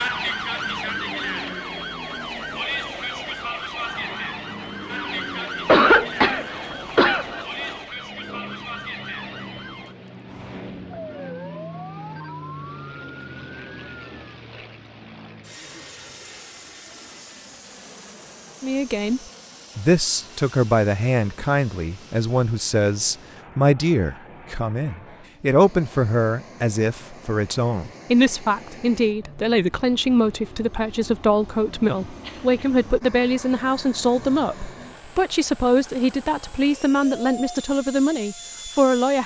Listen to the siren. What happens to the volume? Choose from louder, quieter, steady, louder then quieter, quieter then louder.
quieter.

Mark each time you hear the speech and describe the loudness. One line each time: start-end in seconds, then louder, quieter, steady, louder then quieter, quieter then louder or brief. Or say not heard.
18.6-39.2 steady.